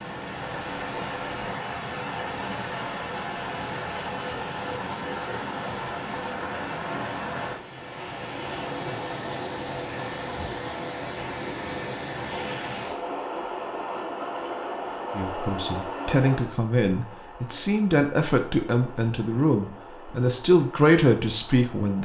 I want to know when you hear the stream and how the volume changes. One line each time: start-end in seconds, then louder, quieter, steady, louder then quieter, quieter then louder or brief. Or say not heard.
0.0-21.9 quieter.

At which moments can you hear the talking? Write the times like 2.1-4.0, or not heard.
15.2-21.9.